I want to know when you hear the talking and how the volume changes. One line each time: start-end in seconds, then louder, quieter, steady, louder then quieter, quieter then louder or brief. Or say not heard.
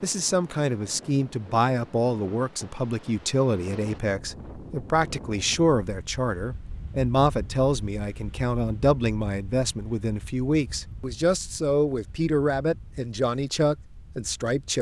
0.0-14.7 steady.